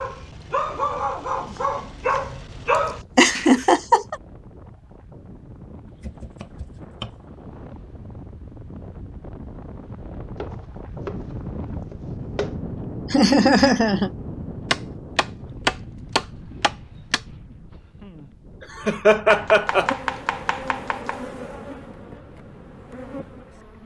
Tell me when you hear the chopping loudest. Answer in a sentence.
The loudest moment of the chopping is at 16 seconds.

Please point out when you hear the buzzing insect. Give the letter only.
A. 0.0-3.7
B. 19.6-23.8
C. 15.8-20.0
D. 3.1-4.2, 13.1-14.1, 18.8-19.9
B.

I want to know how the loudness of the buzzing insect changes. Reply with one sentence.
The volume of the buzzing insect goes down, then up.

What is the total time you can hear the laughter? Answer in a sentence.
You can hear the laughter for 3 seconds altogether.